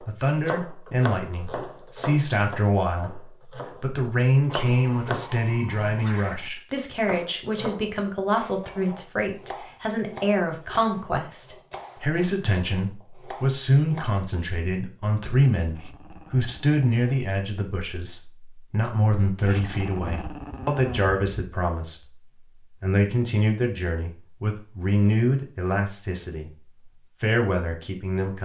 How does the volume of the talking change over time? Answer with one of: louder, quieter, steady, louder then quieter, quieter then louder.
steady.